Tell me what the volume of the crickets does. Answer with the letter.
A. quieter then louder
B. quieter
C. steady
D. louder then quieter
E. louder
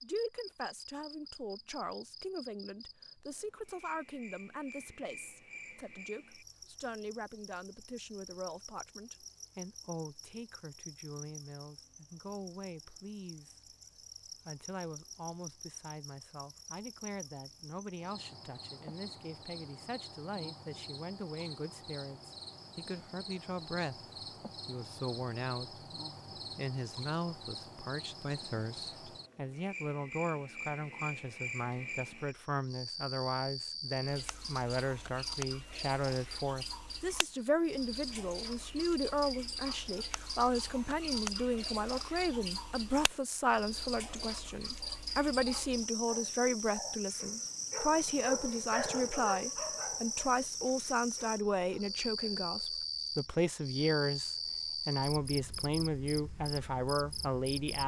E.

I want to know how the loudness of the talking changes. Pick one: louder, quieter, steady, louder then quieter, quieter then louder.
louder.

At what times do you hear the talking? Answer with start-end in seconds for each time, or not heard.
0.0-13.6, 14.4-57.8.